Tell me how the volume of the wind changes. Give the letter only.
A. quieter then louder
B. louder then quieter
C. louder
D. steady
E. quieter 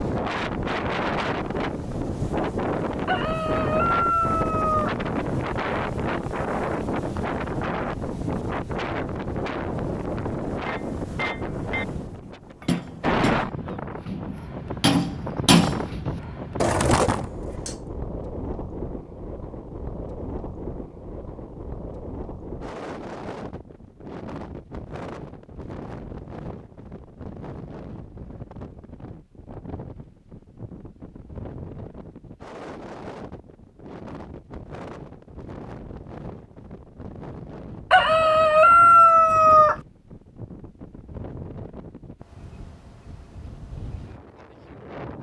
E.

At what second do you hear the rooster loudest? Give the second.
39 s.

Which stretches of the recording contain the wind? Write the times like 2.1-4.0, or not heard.
0.0-45.1.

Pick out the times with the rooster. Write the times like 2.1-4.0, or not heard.
3.0-5.0, 37.9-39.8.